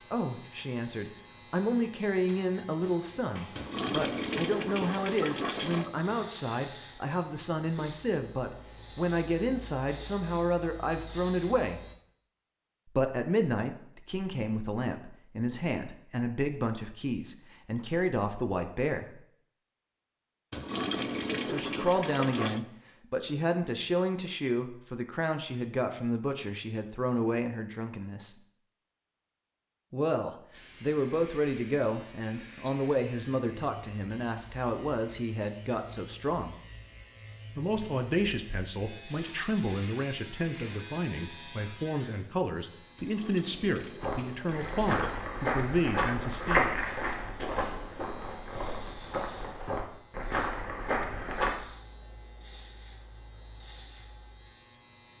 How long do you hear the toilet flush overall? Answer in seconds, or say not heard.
7 s.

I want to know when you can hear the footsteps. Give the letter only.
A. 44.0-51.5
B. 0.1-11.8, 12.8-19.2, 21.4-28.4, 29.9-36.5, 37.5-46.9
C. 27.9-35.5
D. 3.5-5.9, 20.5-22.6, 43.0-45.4
A.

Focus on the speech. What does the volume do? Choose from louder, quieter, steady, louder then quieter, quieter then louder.
steady.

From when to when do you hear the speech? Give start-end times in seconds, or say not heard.
0.1-11.8, 12.8-19.2, 21.4-28.4, 29.9-36.5, 37.5-46.9.